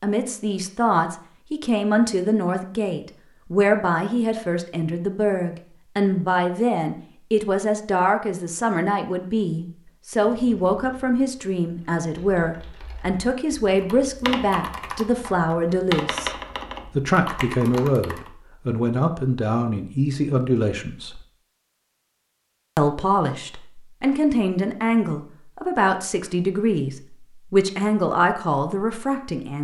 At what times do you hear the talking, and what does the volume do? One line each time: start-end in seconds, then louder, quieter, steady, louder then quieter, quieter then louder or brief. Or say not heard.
0.0-16.3 steady
16.9-21.2 quieter then louder
22.8-29.5 steady.